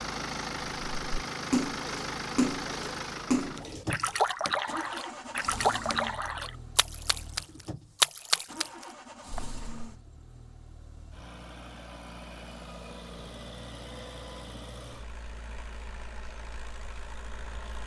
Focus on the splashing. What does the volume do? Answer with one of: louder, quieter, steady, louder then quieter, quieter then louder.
quieter then louder.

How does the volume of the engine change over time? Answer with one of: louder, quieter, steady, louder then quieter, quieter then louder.
quieter.